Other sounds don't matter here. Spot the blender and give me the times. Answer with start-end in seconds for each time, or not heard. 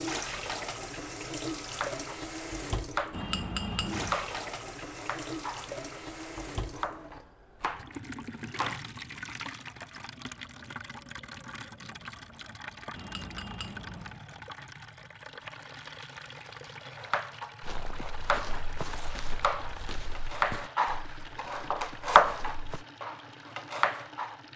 not heard.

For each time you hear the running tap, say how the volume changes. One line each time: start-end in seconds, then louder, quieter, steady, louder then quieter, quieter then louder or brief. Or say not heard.
0.0-24.5 quieter.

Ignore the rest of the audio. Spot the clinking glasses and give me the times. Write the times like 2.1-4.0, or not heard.
3.1-4.2, 12.9-14.2.